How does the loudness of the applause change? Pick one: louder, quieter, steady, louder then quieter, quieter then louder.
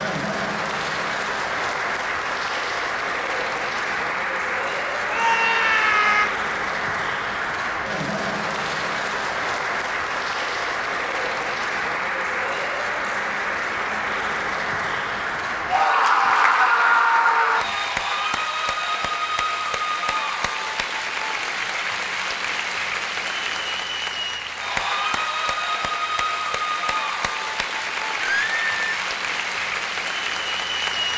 steady.